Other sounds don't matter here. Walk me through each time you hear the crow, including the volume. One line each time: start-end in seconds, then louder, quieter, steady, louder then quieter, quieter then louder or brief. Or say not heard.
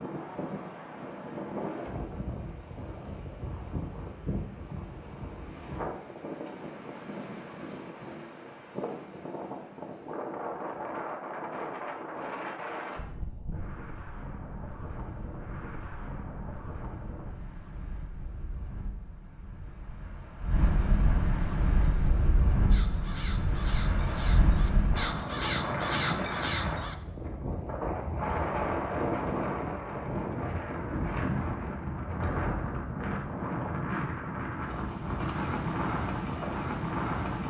21.4-26.9 louder.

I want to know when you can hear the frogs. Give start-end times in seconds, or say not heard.
not heard.